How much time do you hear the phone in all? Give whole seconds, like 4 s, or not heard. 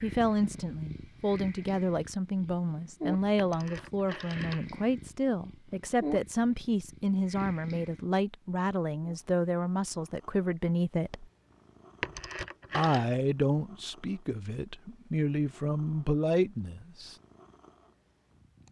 2 s.